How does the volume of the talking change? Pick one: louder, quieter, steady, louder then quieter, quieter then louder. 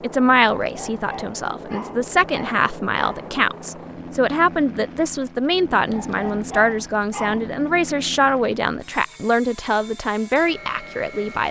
steady.